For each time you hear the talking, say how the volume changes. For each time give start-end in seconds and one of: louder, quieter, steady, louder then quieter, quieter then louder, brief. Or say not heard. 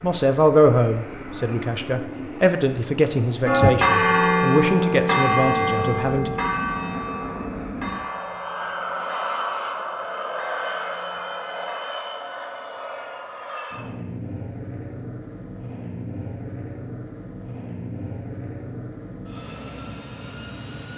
0.0-6.3 quieter.